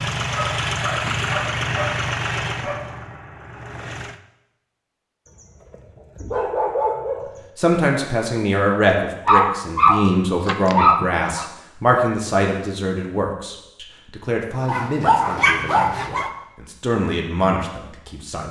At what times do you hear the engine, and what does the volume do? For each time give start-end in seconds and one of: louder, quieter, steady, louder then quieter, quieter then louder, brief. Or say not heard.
0.0-4.2 quieter.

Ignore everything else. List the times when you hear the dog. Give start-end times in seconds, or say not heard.
0.3-2.9, 5.2-7.5, 9.2-11.4, 14.7-16.3.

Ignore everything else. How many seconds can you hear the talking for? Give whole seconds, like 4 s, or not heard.
11 s.